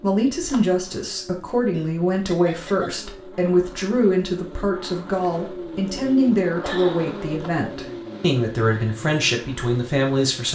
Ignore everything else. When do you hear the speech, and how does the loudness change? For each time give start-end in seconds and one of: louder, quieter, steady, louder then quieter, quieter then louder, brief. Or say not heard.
0.0-10.5 steady.